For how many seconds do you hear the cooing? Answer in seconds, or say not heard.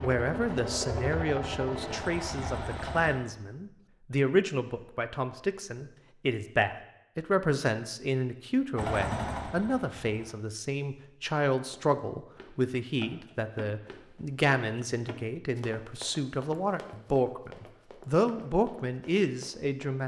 not heard.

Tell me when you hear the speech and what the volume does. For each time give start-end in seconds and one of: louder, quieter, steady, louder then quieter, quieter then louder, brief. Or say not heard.
0.0-20.0 steady.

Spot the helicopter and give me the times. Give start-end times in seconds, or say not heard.
0.0-3.1, 8.8-10.3.